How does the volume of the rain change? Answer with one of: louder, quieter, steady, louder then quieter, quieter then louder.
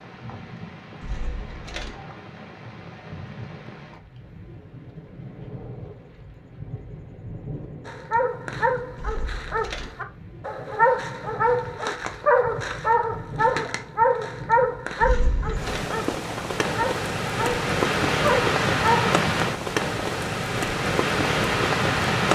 louder.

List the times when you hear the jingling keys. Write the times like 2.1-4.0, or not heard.
1.0-2.0, 8.9-9.9, 15.0-15.8.